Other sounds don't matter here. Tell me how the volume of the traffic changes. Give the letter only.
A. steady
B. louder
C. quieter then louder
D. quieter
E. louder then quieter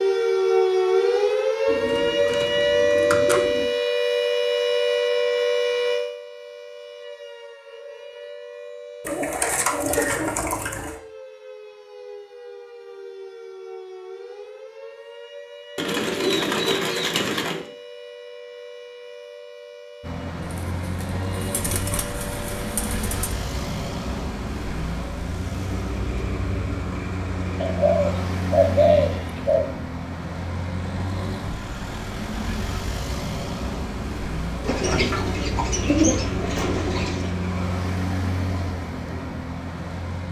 A.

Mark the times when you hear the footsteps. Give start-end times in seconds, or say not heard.
not heard.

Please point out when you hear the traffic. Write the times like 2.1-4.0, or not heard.
20.0-40.2.